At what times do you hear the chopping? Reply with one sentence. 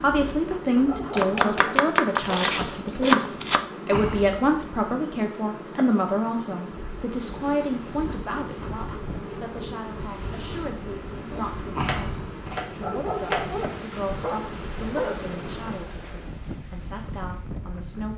You can hear the chopping from 1.1 to 3.6 s and from 11.3 to 13.5 s.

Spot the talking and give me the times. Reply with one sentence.
The talking can be heard from 0.0 to 18.1 s.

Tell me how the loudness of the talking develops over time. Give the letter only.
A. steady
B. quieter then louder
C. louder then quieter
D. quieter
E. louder
D.